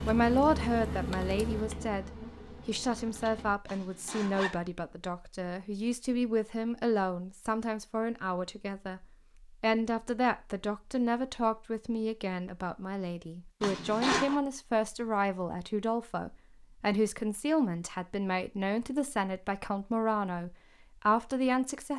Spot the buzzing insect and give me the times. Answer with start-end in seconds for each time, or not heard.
0.0-3.5.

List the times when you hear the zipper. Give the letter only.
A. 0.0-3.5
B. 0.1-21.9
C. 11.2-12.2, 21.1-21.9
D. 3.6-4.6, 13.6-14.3
D.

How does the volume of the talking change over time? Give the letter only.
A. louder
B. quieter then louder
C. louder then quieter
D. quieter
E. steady
E.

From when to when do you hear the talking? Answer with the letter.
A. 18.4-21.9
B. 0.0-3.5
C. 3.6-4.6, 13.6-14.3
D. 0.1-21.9
D.